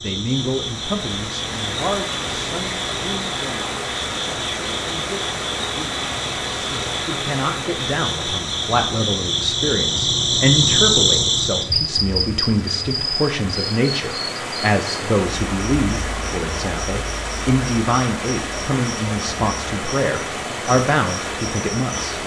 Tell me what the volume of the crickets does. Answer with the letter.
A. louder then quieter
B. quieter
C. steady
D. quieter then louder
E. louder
A.